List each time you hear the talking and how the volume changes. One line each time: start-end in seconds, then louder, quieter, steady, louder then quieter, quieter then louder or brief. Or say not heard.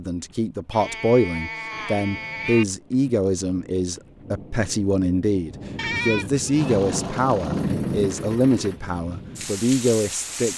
0.0-10.5 steady.